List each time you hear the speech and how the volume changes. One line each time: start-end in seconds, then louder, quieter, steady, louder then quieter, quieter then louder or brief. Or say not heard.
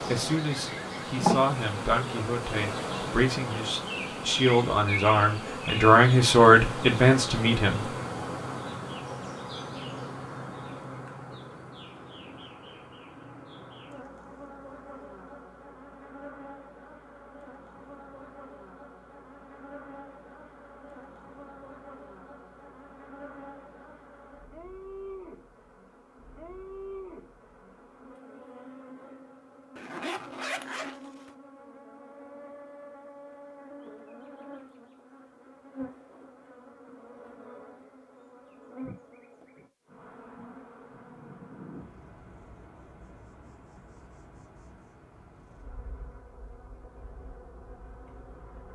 0.0-8.0 louder.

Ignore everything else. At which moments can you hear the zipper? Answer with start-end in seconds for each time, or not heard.
29.8-31.3.